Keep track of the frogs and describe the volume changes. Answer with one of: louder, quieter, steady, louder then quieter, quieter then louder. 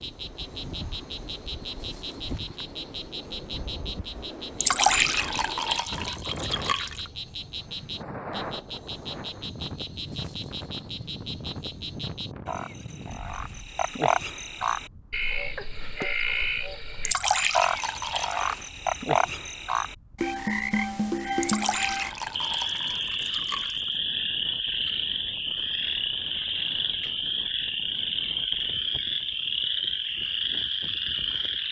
louder.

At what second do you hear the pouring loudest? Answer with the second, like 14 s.
5 s.